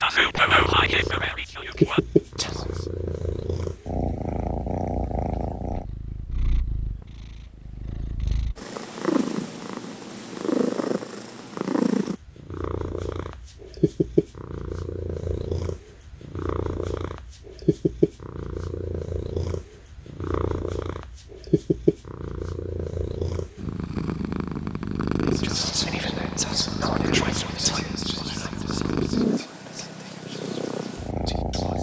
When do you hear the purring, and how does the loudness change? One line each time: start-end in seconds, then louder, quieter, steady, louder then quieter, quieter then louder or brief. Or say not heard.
0.0-31.7 steady.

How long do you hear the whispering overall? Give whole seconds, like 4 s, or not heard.
9 s.